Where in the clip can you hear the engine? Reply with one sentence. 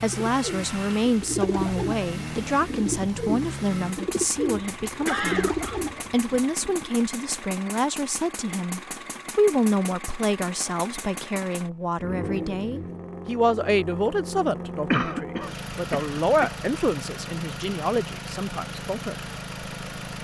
You can hear the engine from 0.0 to 20.1 s.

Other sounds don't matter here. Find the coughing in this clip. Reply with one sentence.
The coughing can be heard from 5.0 to 5.8 s and from 14.9 to 16.6 s.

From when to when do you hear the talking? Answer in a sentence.
You can hear the talking from 0.0 to 5.5 s and from 6.1 to 19.2 s.